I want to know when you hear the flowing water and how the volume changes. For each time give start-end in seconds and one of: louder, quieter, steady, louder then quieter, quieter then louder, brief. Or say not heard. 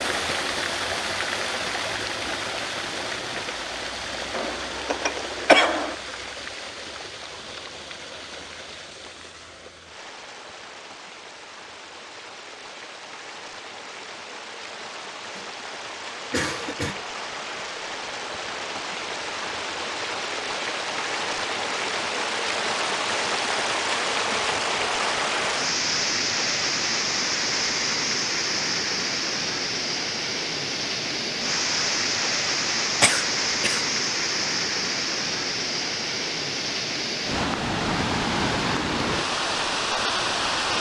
0.0-40.7 quieter then louder.